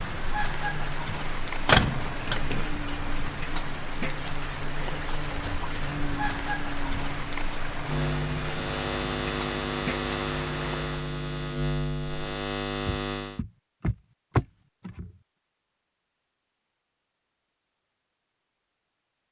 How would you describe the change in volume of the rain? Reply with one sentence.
The loudness of the rain stays about the same.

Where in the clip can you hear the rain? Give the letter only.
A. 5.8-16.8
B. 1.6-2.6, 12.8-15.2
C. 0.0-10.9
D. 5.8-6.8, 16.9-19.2
C.